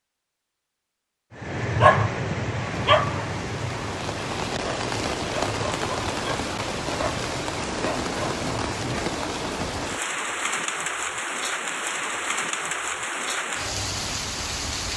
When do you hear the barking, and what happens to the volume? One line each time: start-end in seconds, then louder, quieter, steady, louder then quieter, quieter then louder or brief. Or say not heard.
1.4-9.0 quieter.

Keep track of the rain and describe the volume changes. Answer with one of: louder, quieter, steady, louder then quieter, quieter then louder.
steady.